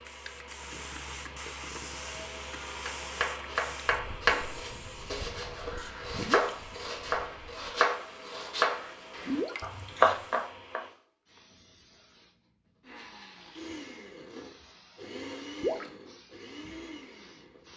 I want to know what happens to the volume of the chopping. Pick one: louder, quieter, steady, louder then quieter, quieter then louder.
quieter then louder.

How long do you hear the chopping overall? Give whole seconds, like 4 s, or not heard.
8 s.